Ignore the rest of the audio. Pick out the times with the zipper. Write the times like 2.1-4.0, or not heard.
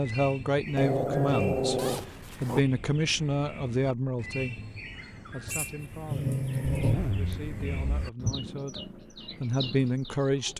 1.8-2.6, 6.6-8.1.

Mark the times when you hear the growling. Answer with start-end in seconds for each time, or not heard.
0.7-2.6, 5.5-7.0.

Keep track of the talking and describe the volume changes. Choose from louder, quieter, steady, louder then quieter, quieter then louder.
quieter then louder.